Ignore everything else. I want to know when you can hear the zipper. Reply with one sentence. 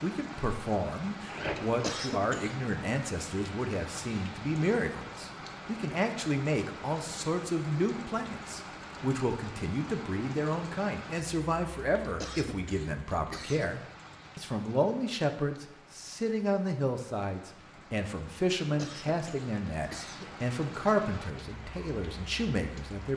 The zipper can be heard from 1.2 to 1.8 s.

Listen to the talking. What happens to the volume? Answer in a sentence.
The loudness of the talking stays about the same.